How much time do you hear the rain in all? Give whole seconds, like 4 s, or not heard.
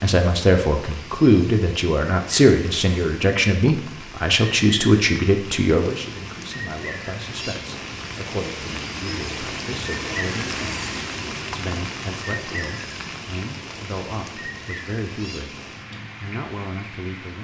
17 s.